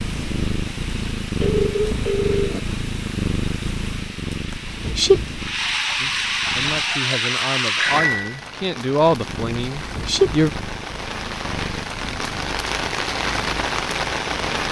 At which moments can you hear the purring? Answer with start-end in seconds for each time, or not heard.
0.0-7.1, 9.2-14.6.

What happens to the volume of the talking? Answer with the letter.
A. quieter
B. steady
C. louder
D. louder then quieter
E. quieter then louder
D.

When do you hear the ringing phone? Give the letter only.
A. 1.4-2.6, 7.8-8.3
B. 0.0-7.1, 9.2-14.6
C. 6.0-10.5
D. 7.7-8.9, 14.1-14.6
A.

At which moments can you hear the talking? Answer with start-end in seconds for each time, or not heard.
6.0-10.5.